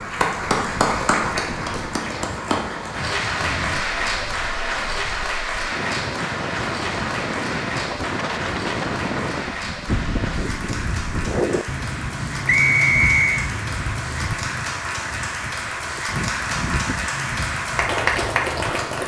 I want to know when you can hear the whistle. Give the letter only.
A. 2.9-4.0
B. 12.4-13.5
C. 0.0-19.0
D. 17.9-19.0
B.